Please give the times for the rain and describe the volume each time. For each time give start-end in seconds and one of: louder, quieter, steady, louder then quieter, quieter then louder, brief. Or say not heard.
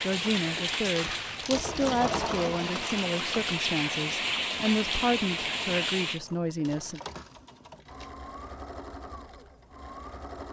0.0-6.2 quieter then louder.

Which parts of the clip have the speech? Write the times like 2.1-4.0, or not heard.
0.0-7.0.